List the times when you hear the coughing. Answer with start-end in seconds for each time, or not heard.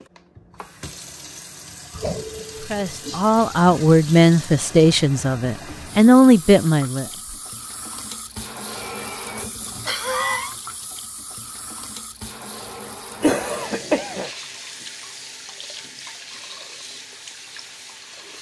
1.9-4.0, 8.7-10.6, 13.2-14.3.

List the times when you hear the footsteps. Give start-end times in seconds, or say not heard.
not heard.